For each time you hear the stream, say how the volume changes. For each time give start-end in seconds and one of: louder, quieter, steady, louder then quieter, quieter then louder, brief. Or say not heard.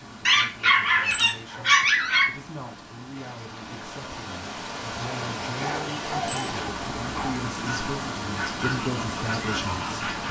0.0-10.2 louder.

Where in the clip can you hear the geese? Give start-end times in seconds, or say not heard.
7.6-10.2.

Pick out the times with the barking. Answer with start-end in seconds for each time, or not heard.
0.2-2.2, 5.5-7.4.